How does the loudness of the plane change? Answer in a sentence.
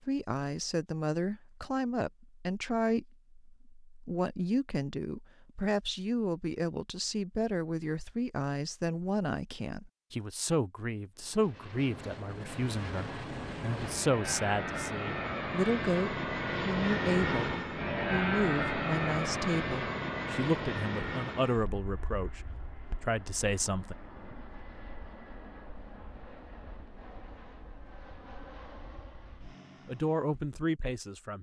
The loudness of the plane goes up, then down.